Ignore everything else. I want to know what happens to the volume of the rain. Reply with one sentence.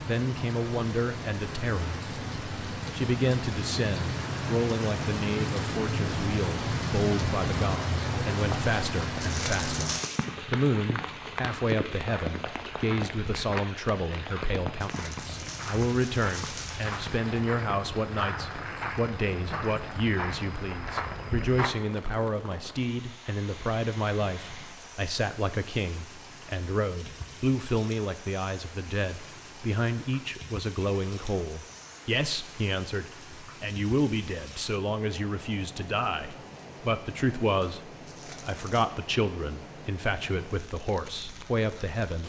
The loudness of the rain goes down.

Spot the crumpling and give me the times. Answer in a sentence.
You can hear the crumpling from 9.2 to 10.2 s, from 14.8 to 16.8 s and from 38.0 to 38.9 s.